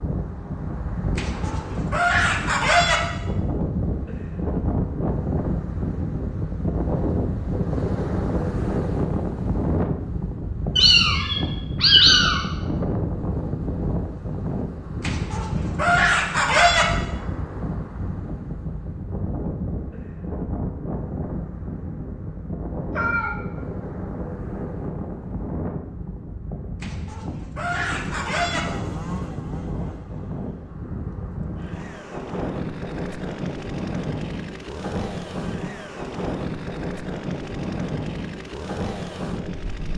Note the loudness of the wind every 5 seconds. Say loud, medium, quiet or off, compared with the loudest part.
loud, loud, loud, medium, medium, medium, medium, medium.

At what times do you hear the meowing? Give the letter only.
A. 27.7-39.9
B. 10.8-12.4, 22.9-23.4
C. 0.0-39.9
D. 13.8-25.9
B.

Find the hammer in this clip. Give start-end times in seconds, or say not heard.
not heard.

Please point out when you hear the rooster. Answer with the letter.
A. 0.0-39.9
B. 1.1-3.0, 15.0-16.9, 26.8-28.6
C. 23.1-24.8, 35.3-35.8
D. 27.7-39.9
B.